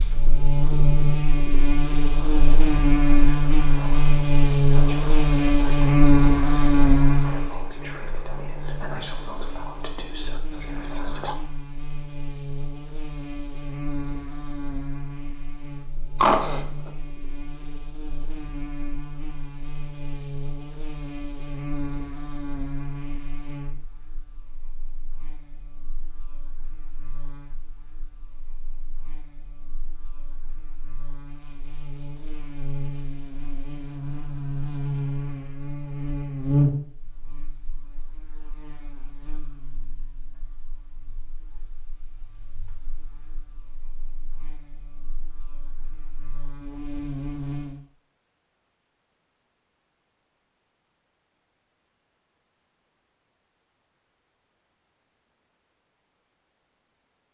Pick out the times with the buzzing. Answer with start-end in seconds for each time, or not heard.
0.0-47.8.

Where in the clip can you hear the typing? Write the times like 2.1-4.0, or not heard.
not heard.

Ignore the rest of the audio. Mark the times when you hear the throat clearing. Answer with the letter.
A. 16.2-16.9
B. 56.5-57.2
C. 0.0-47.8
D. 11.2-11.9
A.